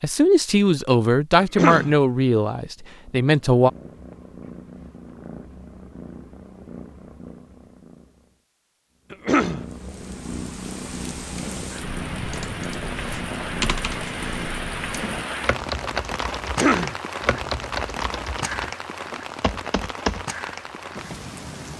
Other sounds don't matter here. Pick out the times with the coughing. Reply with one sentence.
You can hear the coughing from 1.4 to 1.9 s, from 9.1 to 9.7 s and from 16.4 to 16.9 s.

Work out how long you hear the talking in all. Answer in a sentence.
The talking can be heard for 4 seconds in total.